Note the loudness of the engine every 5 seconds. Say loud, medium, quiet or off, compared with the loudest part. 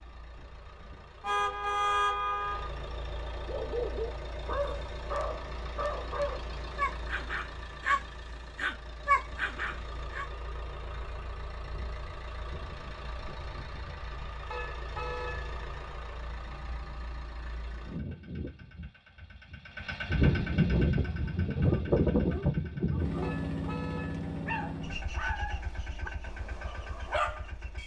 quiet, quiet, quiet, quiet, loud, quiet.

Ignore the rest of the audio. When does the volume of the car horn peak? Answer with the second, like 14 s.
2 s.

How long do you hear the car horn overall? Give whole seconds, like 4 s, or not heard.
4 s.